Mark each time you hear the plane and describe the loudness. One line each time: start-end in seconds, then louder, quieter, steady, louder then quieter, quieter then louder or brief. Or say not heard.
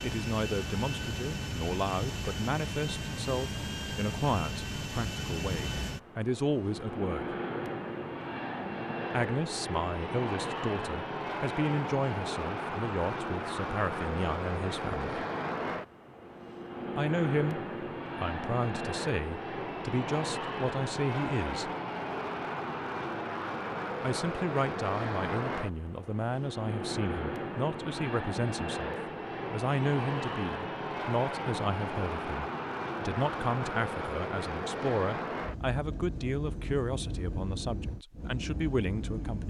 0.0-39.4 steady.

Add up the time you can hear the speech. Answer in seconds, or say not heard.
34 s.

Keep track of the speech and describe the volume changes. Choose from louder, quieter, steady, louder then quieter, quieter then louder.
steady.